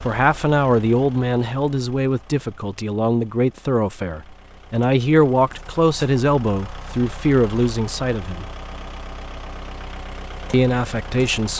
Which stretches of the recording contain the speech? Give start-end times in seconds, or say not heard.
0.0-8.4, 10.5-11.5.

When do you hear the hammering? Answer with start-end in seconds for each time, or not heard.
not heard.